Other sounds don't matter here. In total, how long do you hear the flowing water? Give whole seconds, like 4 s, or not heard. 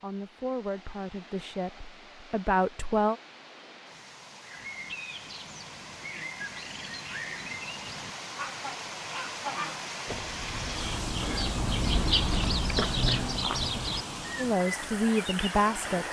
16 s.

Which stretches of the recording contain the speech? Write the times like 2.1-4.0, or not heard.
0.0-3.1, 14.3-16.0.